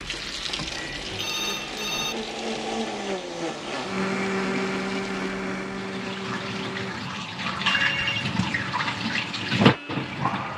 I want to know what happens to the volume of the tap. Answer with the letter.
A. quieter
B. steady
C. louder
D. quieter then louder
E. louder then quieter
D.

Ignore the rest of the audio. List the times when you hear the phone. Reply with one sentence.
The phone can be heard from 1.1 to 2.1 s and from 7.8 to 8.2 s.